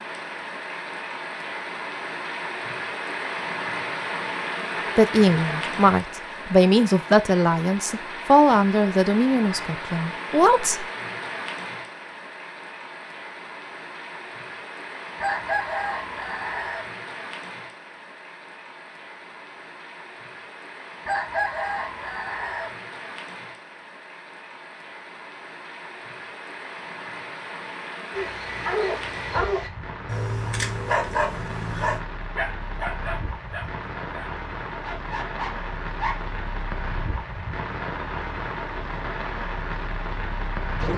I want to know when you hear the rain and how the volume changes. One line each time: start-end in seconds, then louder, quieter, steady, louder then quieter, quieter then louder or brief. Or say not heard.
0.0-40.9 quieter then louder.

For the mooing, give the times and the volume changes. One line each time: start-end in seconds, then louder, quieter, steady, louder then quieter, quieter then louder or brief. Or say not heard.
not heard.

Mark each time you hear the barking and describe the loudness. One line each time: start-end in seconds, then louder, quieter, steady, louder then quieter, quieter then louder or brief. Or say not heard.
28.1-36.2 quieter.